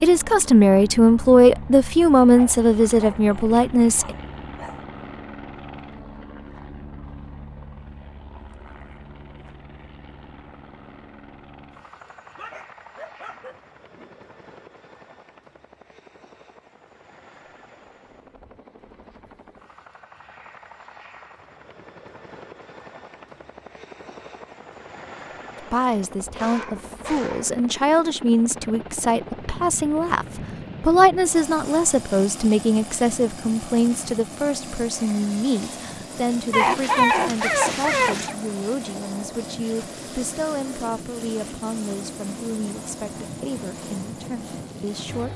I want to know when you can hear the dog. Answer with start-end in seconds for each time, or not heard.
2.4-4.8, 12.0-14.2, 25.9-27.5, 36.5-38.4.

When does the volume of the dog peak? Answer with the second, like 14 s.
37 s.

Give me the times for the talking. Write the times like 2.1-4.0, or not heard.
0.0-4.2, 25.6-45.3.